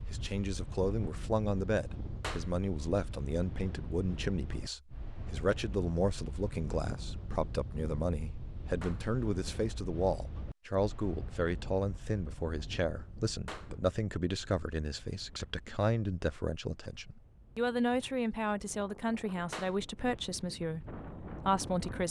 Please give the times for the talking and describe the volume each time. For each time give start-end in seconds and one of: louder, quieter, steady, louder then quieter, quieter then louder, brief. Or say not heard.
0.1-22.0 steady.